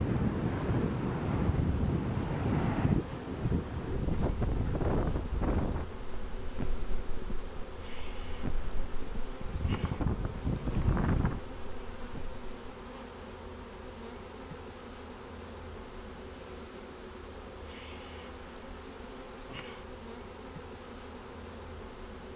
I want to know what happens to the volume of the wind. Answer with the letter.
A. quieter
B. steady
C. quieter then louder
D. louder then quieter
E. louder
C.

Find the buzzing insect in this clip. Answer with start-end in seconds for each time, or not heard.
0.0-22.3.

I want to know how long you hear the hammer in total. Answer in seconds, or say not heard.
not heard.